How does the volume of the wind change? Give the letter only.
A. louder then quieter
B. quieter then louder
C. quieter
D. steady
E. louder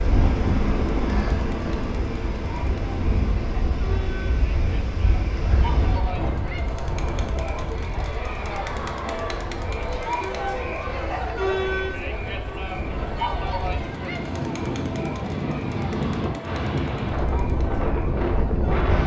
B.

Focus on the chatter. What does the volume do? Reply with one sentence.
The loudness of the chatter goes up, then down.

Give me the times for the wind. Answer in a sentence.
You can hear the wind from 0.0 to 19.0 s.